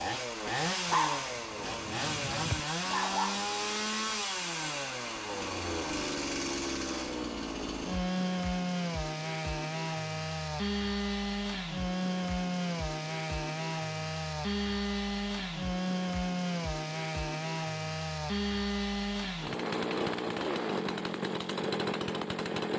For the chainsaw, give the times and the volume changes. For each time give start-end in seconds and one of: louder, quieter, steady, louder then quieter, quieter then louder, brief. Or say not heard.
0.0-22.7 steady.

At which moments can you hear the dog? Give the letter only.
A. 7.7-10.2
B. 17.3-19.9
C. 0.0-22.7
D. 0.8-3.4
D.